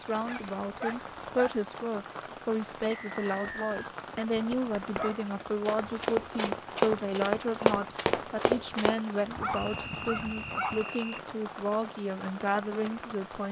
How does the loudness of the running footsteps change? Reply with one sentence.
The loudness of the running footsteps goes up.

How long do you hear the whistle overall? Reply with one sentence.
The whistle can be heard for 3 seconds in total.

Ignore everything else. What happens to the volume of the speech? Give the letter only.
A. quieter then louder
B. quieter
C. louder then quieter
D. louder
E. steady
E.